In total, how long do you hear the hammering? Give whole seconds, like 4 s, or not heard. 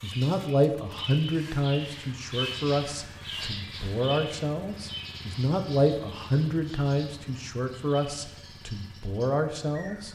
not heard.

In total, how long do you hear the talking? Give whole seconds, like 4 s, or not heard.
10 s.